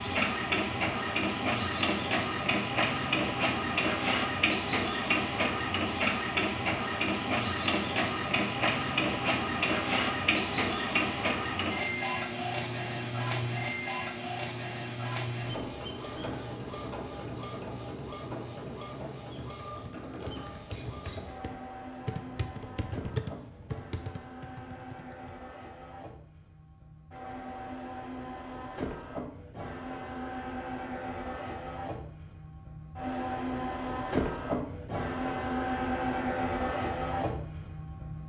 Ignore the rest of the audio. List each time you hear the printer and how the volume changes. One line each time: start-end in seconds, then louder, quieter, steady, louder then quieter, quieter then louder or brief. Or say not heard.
0.0-38.2 quieter then louder.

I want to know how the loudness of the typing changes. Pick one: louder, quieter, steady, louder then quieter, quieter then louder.
louder then quieter.